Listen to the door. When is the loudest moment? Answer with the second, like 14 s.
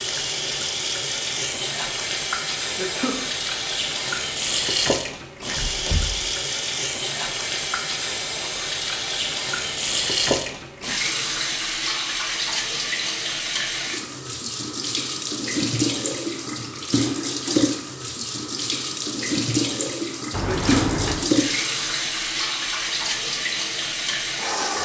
21 s.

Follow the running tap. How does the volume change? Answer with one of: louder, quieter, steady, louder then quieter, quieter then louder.
steady.